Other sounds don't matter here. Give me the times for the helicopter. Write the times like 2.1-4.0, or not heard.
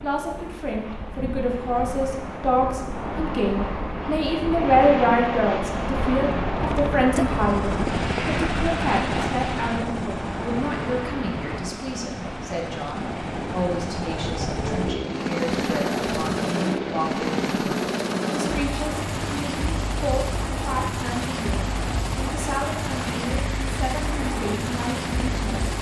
6.4-25.7.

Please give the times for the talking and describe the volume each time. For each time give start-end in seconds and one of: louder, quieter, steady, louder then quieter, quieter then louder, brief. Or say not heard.
0.0-25.7 quieter.